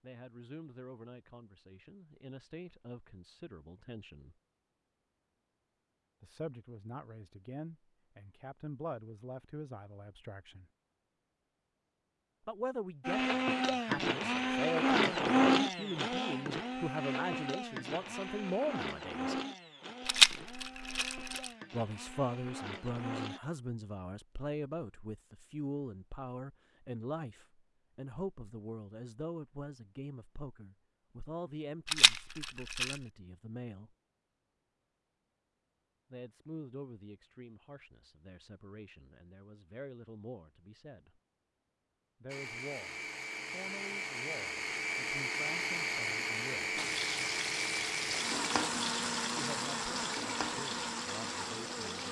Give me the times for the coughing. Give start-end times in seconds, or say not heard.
not heard.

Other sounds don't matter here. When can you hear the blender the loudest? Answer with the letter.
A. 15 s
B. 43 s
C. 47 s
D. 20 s
A.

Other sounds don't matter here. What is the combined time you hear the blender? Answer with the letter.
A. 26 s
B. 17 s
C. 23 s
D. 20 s
D.